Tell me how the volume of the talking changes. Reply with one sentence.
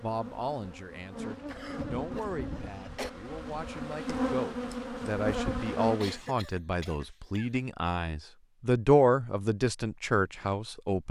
The loudness of the talking goes up.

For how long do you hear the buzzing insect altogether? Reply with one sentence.
The buzzing insect can be heard for 6 seconds in total.